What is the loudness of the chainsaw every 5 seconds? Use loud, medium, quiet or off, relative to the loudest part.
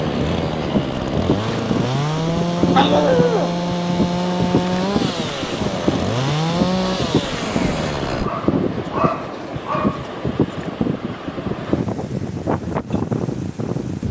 loud, loud, off.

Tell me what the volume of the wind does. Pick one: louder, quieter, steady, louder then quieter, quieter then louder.
steady.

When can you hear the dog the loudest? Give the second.
3 s.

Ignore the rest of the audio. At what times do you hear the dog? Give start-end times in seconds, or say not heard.
2.8-3.5, 8.2-10.1.